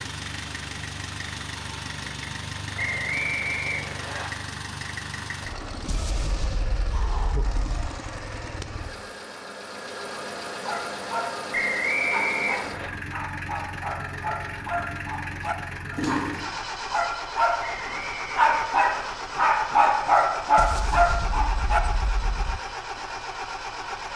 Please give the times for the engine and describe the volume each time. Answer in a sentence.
You can hear the engine from 0.0 to 24.1 s, at a steady volume.